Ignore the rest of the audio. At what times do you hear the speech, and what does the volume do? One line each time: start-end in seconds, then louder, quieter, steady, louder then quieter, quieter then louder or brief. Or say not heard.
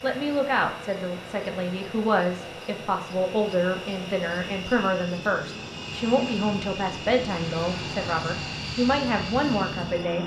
0.0-10.2 steady.